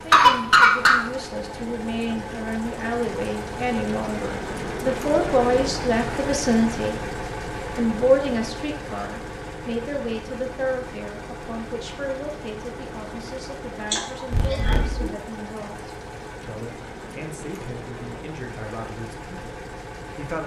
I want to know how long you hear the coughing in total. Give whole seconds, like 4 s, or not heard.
2 s.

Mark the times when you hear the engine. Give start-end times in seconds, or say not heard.
0.0-20.4.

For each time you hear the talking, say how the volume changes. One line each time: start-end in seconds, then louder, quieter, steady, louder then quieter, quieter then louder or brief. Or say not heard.
0.0-7.0 louder
7.8-20.4 quieter.